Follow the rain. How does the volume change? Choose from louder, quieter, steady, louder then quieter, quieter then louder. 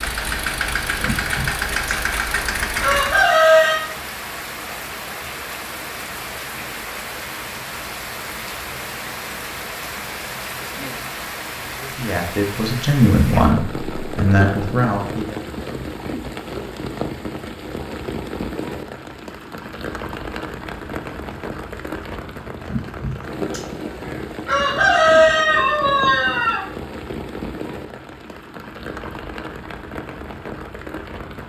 steady.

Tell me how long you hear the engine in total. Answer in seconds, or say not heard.
3 s.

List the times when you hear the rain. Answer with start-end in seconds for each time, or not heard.
0.0-31.4.